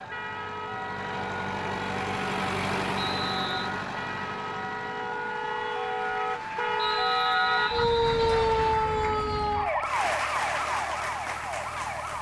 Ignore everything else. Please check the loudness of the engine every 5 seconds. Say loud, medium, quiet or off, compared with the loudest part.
loud, quiet, quiet.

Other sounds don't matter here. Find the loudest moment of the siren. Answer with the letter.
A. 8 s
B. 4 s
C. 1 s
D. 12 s
A.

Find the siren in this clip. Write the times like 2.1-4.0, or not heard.
0.0-12.1.